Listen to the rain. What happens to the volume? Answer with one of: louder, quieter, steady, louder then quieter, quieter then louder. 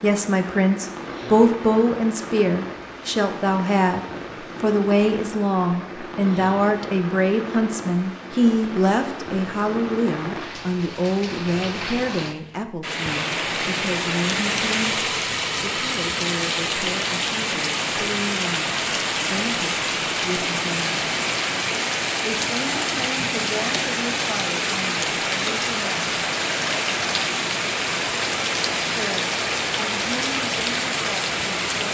louder.